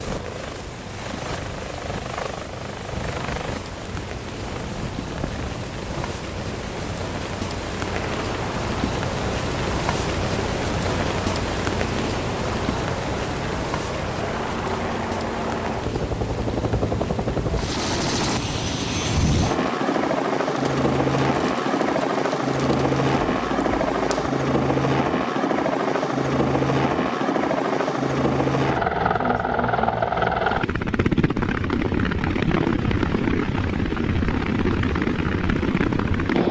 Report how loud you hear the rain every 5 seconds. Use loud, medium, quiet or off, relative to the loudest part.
medium, loud, loud, medium, medium, off, off, off.